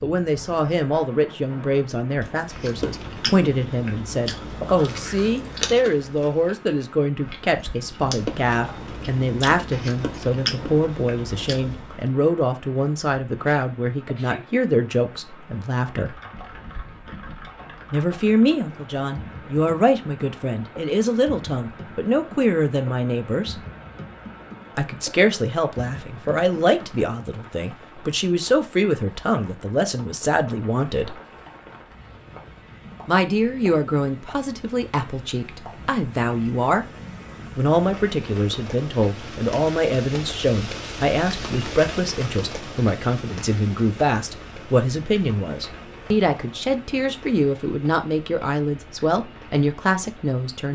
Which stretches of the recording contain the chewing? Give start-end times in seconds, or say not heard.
2.2-12.0.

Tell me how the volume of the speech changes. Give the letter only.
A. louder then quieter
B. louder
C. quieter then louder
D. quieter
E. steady
E.